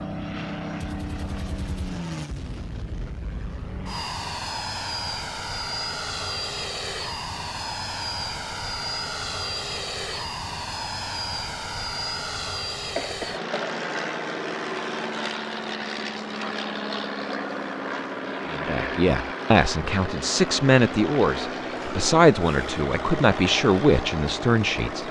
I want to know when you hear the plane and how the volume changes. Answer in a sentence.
You can hear the plane from 0.0 to 25.0 s, at a steady volume.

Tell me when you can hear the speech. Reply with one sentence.
The speech can be heard from 18.5 to 25.0 s.